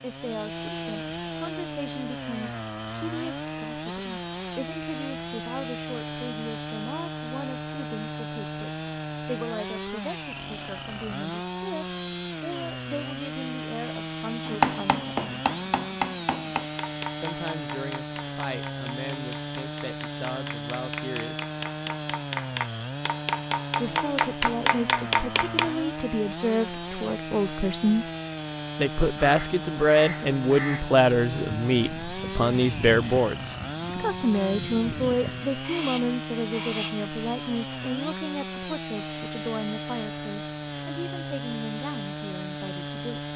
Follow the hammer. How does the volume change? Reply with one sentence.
The volume of the hammer goes down, then up.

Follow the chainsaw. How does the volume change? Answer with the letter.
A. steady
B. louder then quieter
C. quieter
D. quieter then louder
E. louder
A.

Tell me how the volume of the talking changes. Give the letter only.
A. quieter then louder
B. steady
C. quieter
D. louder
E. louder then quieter
E.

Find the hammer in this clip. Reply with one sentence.
You can hear the hammer from 14.4 to 25.8 s.